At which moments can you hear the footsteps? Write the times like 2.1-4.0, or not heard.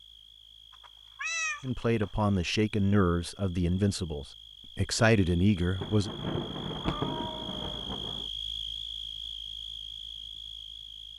not heard.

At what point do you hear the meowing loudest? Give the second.
1 s.